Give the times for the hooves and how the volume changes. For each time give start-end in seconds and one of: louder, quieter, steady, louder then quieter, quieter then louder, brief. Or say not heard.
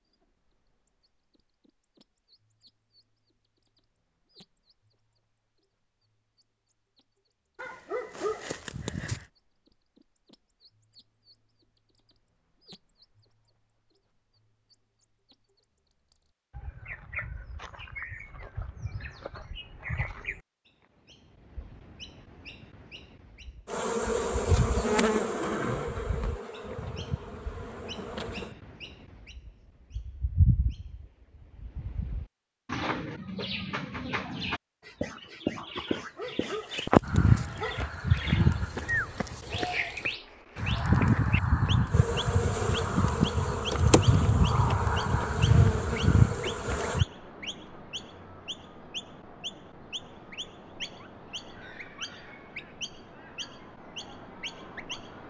37.0-47.0 steady.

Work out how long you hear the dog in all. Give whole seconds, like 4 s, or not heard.
4 s.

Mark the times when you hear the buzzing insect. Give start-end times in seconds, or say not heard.
23.6-28.5, 41.9-47.0.